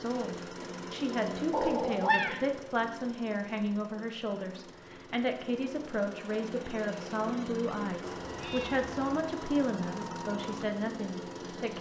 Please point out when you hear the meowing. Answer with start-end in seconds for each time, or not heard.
1.5-2.5, 8.2-8.9.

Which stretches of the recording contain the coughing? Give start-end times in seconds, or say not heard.
not heard.